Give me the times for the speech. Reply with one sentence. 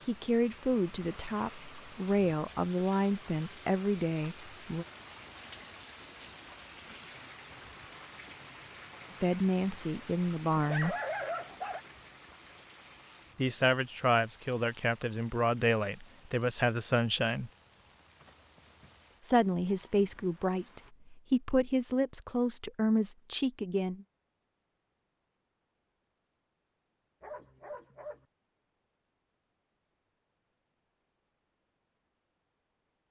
The speech can be heard from 0.1 to 4.8 s, from 9.2 to 10.9 s, from 13.3 to 17.5 s and from 19.2 to 24.1 s.